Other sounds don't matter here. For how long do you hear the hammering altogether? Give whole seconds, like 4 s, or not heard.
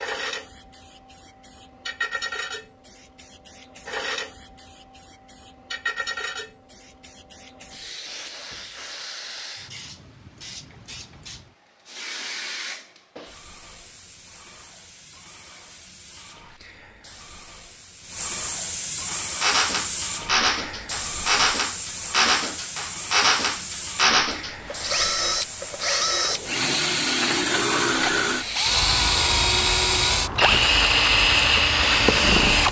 not heard.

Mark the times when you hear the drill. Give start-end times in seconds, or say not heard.
19.1-32.6.